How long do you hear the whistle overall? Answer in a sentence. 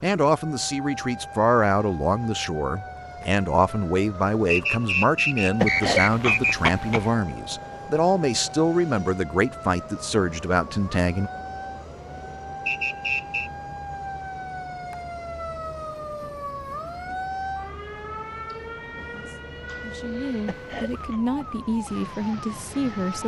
The whistle can be heard for 3 seconds in total.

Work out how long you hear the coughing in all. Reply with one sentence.
The coughing can be heard for 2 seconds in total.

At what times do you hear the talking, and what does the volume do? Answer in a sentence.
You can hear the talking from 0.0 to 11.3 s, at a steady volume; and from 19.1 to 23.2 s, getting louder.